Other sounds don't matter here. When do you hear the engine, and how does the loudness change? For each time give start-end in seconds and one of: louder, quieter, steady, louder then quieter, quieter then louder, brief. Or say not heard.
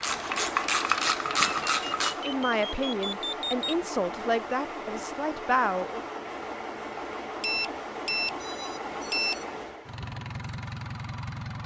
0.0-11.6 steady.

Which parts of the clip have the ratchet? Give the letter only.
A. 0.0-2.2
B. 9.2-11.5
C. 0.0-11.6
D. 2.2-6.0
A.